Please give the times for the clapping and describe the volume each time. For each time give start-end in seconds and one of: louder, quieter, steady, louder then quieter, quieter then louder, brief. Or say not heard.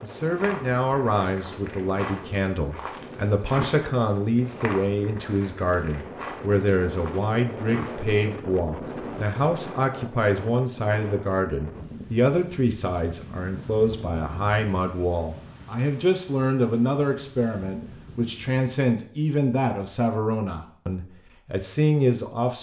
not heard.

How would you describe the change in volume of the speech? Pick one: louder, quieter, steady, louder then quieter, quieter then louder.
steady.